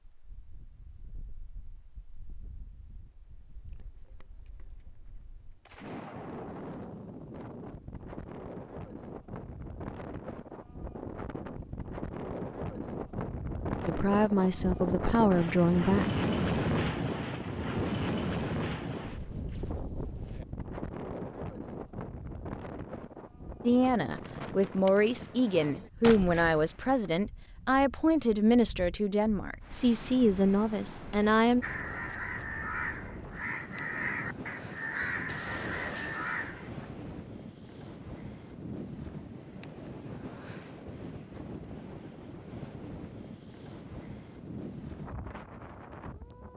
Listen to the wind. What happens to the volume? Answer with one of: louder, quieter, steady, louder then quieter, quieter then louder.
louder then quieter.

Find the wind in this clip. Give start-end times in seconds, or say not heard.
0.1-46.5.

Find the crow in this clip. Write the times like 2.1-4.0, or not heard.
31.6-36.9.